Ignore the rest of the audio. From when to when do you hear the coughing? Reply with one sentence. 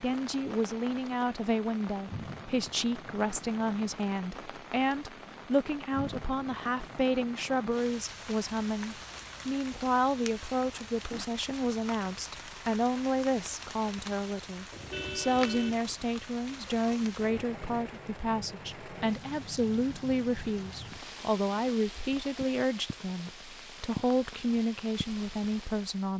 You can't hear the coughing here.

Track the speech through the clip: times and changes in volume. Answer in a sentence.
The speech can be heard from 0.0 to 26.1 s, at a steady volume.